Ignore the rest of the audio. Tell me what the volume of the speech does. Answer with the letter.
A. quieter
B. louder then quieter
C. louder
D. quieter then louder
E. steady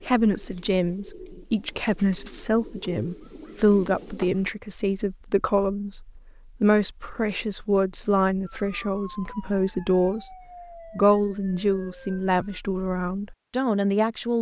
E.